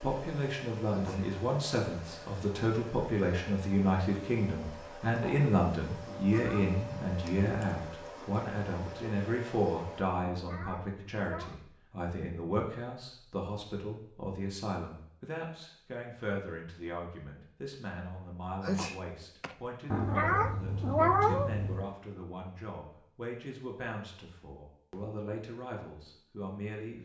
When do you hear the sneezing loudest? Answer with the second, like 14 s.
19 s.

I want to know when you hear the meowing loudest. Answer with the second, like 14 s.
21 s.